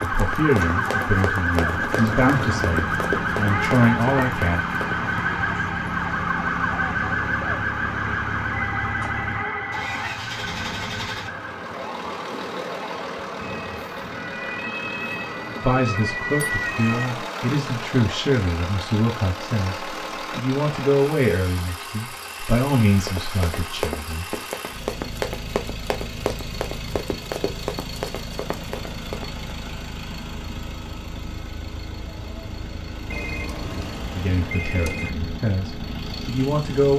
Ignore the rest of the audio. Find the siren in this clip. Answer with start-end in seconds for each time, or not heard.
0.0-17.1.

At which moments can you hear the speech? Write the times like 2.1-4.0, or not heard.
0.0-4.6, 15.6-24.2, 34.1-36.9.